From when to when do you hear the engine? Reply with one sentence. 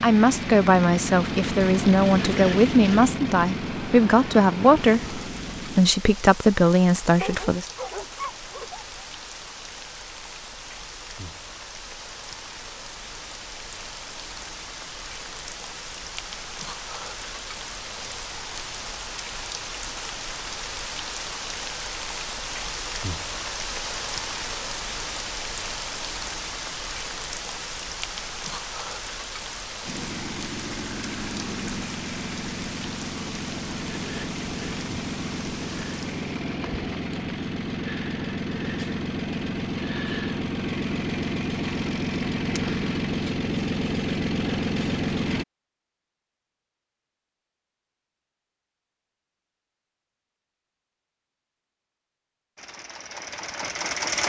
The engine can be heard from 0.0 to 5.8 s, from 29.9 to 45.5 s and from 52.5 to 54.2 s.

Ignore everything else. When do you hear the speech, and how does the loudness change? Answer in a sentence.
The speech can be heard from 0.0 to 7.7 s, at a steady volume.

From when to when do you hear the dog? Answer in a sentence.
The dog can be heard from 7.1 to 9.0 s.